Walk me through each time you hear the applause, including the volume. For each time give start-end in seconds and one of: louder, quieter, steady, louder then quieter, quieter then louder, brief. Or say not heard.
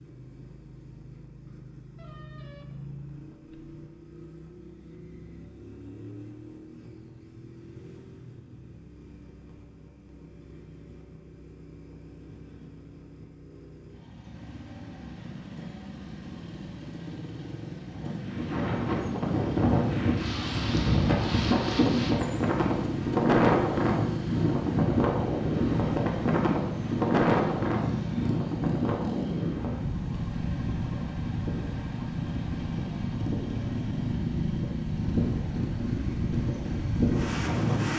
not heard.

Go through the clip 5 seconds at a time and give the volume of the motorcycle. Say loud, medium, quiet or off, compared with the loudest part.
quiet, quiet, quiet, medium, loud, loud, loud, loud.